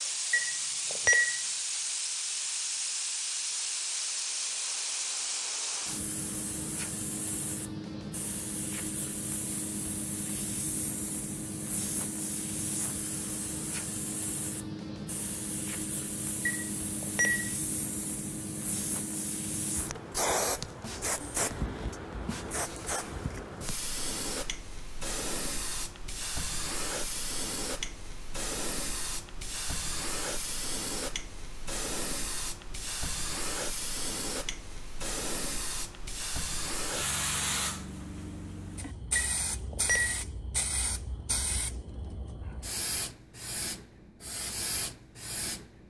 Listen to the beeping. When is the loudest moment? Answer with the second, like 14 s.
1 s.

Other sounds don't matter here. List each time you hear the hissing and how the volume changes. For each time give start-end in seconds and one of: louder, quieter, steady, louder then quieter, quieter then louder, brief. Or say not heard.
0.0-45.8 steady.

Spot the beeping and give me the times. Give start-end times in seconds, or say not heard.
0.3-1.4, 16.4-17.5, 39.1-40.2.